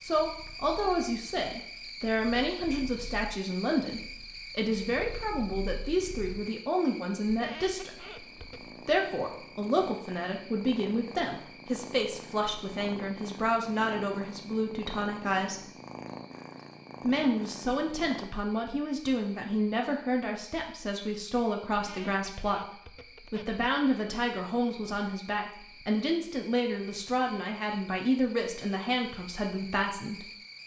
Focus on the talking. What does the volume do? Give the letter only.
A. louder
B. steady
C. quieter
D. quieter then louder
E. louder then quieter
B.